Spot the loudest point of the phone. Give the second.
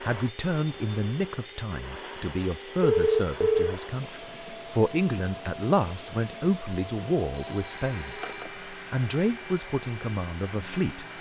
3 s.